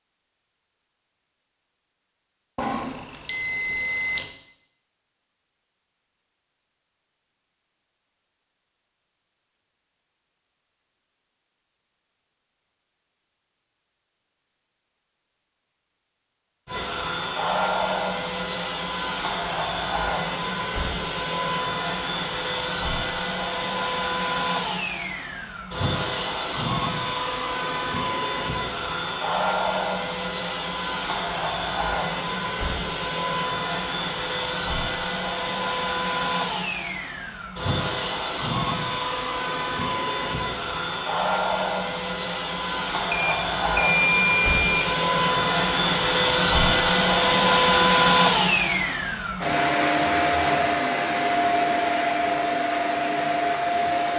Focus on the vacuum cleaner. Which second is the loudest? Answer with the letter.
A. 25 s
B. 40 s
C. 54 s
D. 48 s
D.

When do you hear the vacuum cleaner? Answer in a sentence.
The vacuum cleaner can be heard from 16.6 to 54.1 s.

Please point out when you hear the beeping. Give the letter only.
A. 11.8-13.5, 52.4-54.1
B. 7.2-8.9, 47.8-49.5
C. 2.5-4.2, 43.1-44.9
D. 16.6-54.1
C.